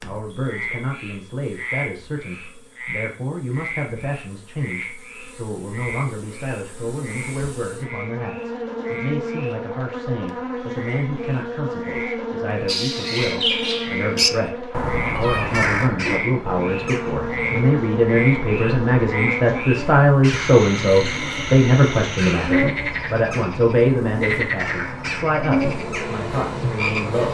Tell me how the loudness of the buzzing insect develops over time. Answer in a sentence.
The loudness of the buzzing insect goes up.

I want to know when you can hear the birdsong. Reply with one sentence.
You can hear the birdsong from 12.7 to 27.2 s.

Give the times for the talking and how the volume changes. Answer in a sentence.
You can hear the talking from 0.0 to 27.2 s, getting louder.